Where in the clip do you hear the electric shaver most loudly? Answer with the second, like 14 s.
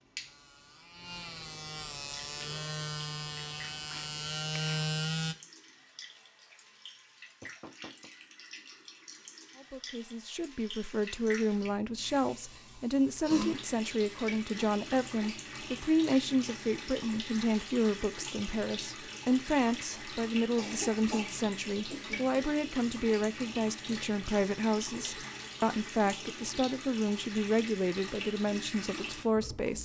5 s.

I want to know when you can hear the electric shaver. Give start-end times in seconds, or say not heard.
0.0-5.3.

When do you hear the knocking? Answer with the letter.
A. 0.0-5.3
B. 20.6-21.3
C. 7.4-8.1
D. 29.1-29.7
C.